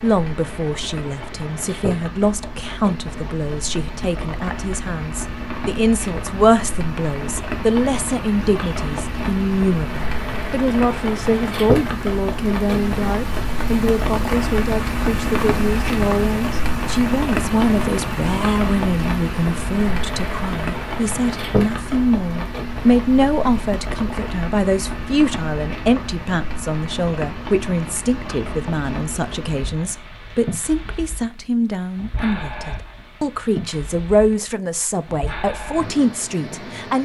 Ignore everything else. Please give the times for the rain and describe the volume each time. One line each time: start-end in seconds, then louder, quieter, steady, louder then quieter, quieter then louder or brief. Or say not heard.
0.0-36.9 louder then quieter.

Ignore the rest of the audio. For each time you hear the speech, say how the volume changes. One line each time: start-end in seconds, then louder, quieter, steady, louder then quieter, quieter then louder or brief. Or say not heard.
0.0-36.9 steady.